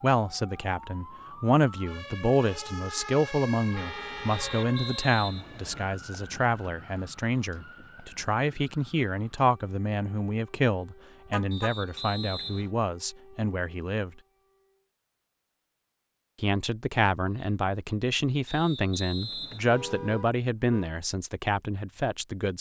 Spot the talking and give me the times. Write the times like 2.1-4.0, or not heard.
0.0-14.1, 16.4-22.5.